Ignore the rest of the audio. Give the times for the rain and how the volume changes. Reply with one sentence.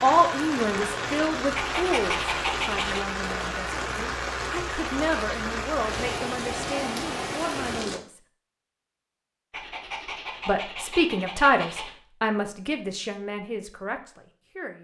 The rain can be heard from 0.0 to 8.0 s, at a steady volume.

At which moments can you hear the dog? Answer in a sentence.
The dog can be heard from 1.6 to 3.0 s and from 9.5 to 11.9 s.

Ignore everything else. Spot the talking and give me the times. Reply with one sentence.
The talking can be heard from 0.0 to 8.2 s and from 10.4 to 14.7 s.